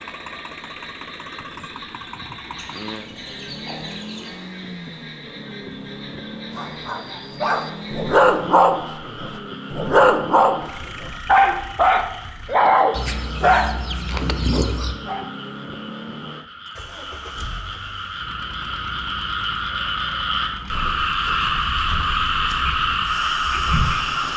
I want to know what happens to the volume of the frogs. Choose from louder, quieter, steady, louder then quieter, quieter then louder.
louder.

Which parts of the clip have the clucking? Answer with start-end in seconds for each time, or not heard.
2.5-4.4, 12.9-14.9.